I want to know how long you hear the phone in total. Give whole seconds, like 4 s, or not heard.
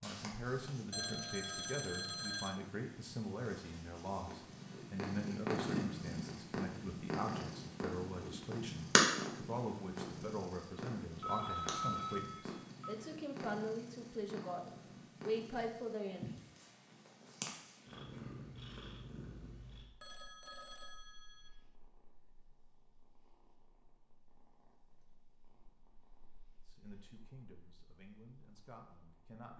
5 s.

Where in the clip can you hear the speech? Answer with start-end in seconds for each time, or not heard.
0.0-16.2, 26.6-29.5.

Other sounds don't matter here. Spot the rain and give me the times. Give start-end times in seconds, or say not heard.
not heard.